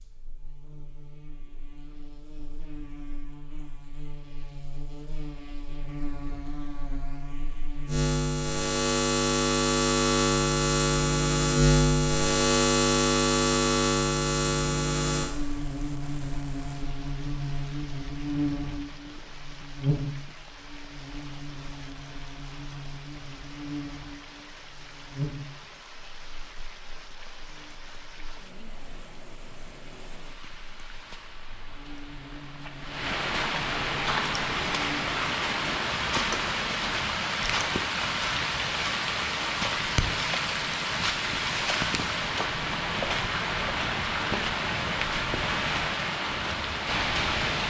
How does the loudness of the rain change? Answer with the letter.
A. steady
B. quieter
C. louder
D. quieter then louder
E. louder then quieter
C.